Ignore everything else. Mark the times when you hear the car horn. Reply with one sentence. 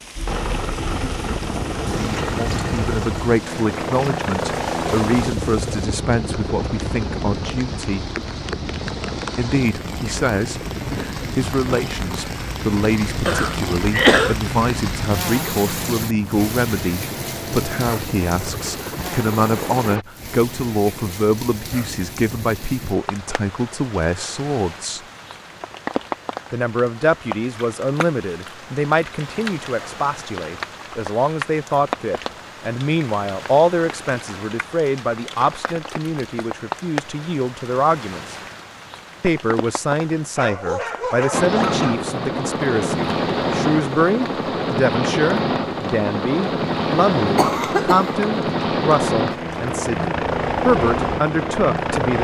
You can't hear the car horn here.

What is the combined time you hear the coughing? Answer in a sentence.
You can hear the coughing for 2 seconds altogether.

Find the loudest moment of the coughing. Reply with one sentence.
The volume of the coughing peaks at 14 seconds.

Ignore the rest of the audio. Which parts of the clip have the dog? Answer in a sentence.
You can hear the dog from 40.4 to 42.0 s.